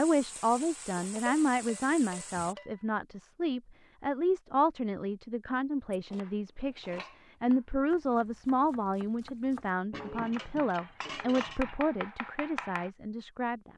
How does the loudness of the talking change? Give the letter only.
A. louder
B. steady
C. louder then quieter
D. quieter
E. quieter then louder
B.